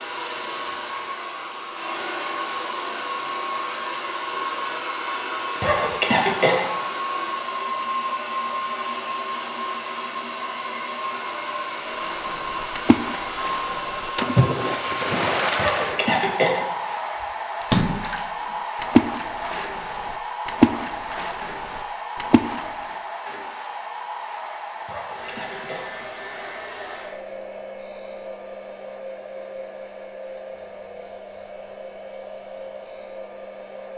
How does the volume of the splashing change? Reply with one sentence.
The loudness of the splashing goes up, then down.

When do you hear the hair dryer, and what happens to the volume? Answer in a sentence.
The hair dryer can be heard from 0.0 to 33.9 s, getting quieter.